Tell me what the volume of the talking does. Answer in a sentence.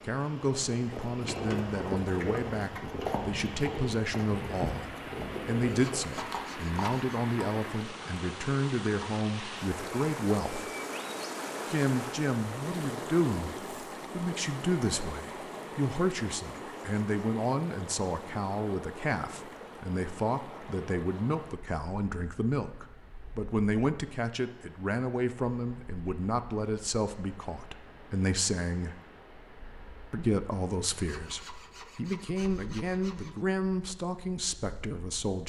The loudness of the talking stays about the same.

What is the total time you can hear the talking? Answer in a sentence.
You can hear the talking for 33 seconds altogether.